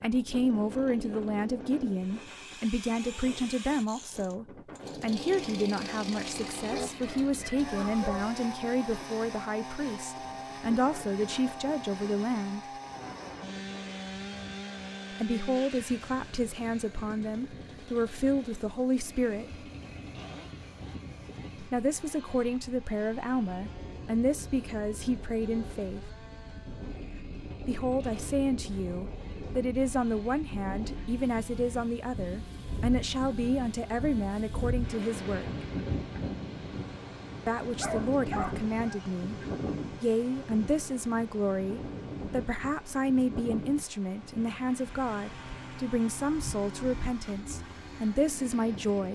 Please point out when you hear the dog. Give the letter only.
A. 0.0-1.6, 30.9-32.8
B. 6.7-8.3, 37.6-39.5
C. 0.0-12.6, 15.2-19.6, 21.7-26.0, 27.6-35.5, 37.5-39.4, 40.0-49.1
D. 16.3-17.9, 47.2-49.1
B.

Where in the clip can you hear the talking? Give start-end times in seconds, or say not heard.
0.0-12.6, 15.2-19.6, 21.7-26.0, 27.6-35.5, 37.5-39.4, 40.0-49.1.